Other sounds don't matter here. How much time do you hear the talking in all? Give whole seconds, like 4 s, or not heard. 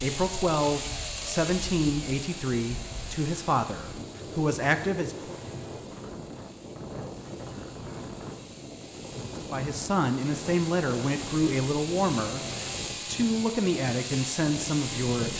11 s.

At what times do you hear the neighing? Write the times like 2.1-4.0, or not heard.
not heard.